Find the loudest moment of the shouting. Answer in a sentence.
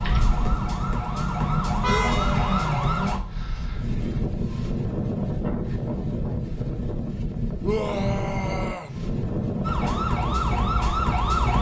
The volume of the shouting peaks at 8 seconds.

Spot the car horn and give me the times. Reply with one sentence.
The car horn can be heard from 1.8 to 2.7 s.